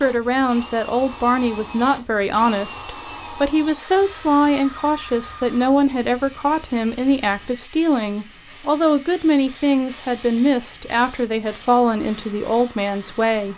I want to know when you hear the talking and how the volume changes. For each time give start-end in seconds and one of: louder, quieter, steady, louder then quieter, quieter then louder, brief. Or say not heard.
0.0-13.5 steady.